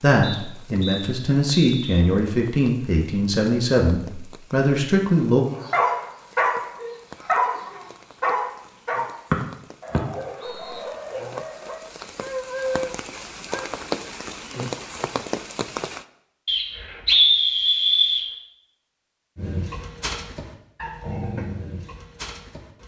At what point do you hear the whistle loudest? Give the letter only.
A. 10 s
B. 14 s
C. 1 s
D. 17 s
D.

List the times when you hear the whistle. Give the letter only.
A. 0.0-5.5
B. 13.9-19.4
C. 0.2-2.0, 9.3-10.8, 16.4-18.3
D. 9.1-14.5
C.